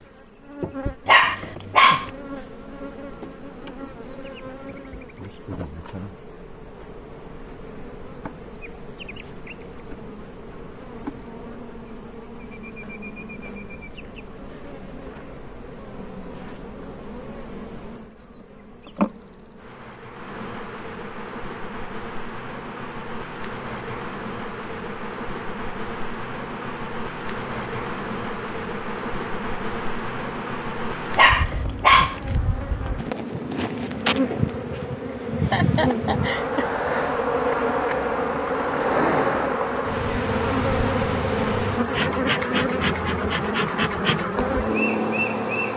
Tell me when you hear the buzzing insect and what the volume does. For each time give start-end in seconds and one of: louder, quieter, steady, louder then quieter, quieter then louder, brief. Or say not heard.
0.0-45.7 louder.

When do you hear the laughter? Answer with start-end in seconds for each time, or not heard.
35.0-36.6.